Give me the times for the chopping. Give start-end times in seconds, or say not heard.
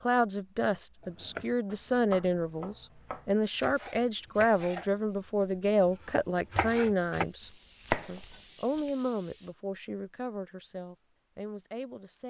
1.0-8.9.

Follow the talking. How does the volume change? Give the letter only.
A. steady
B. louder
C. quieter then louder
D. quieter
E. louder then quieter
D.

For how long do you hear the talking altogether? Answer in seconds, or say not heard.
12 s.